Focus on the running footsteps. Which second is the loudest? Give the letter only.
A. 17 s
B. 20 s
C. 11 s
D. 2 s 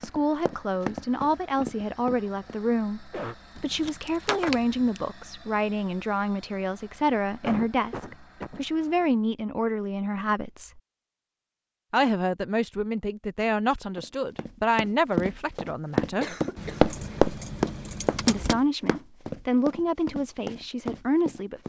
A.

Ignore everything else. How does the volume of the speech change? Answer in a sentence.
The loudness of the speech stays about the same.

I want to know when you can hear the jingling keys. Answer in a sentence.
You can hear the jingling keys from 3.5 to 5.0 s and from 16.6 to 18.6 s.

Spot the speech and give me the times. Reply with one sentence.
The speech can be heard from 0.0 to 10.8 s, from 11.9 to 16.4 s and from 18.2 to 21.6 s.